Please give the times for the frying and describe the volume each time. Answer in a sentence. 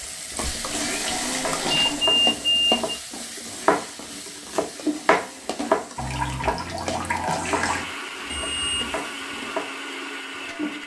You can hear the frying from 0.0 to 10.8 s, getting quieter.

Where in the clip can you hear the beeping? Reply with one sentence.
The beeping can be heard from 1.7 to 3.0 s and from 8.3 to 8.9 s.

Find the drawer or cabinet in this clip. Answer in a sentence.
The drawer or cabinet can't be heard in this clip.